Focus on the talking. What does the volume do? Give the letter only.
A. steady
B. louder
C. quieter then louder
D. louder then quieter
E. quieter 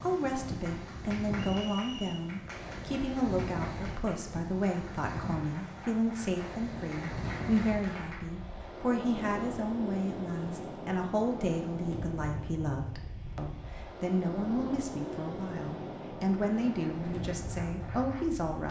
A.